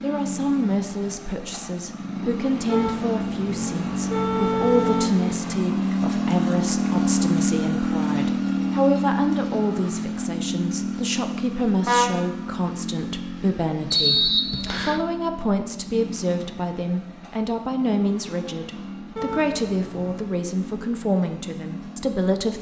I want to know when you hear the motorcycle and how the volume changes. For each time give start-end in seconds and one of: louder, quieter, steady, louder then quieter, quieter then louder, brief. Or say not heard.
0.0-22.5 louder then quieter.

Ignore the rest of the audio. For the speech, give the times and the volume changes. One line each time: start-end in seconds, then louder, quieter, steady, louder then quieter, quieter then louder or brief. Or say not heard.
0.0-22.5 steady.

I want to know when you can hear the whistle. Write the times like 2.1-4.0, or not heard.
13.9-15.1.